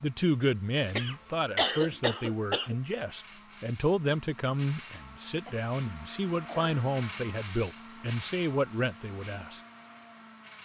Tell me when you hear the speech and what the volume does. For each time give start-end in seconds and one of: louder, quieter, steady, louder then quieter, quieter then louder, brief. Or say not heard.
0.0-9.6 steady.